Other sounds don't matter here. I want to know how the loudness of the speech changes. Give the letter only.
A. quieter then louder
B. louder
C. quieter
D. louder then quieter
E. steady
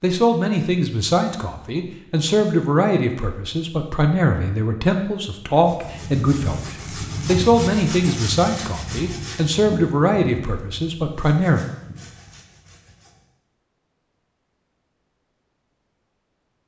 E.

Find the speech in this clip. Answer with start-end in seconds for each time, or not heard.
0.0-11.7.